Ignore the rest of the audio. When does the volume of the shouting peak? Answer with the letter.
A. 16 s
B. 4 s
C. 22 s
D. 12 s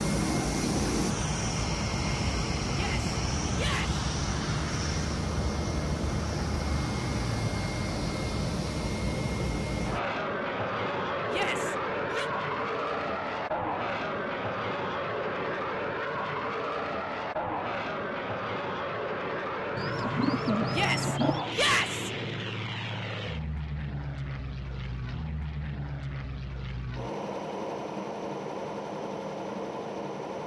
C.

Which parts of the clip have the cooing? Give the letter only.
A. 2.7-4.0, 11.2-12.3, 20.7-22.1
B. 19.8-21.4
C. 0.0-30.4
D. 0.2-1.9
B.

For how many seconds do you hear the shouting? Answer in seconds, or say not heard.
4 s.